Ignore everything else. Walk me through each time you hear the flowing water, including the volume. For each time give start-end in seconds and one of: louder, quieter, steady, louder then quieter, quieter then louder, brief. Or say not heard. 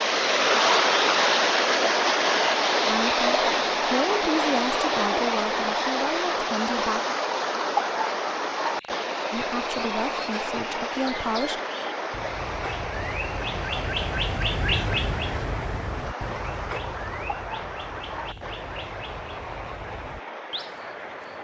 0.0-21.3 quieter.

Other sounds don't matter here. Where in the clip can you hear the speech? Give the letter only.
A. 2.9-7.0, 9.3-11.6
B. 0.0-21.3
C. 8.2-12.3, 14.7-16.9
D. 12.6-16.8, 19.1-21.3
A.